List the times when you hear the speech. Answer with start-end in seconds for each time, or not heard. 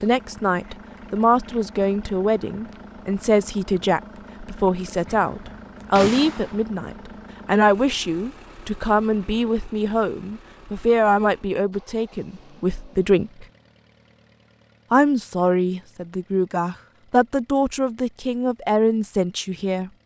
0.0-13.4, 14.9-19.9.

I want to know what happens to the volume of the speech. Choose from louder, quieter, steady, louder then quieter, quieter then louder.
steady.